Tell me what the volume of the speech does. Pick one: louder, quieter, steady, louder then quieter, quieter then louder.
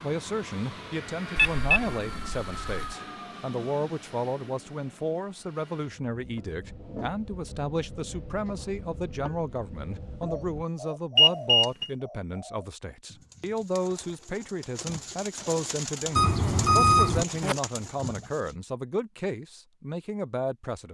steady.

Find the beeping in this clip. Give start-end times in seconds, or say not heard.
1.4-3.0, 11.2-11.9, 16.1-17.6.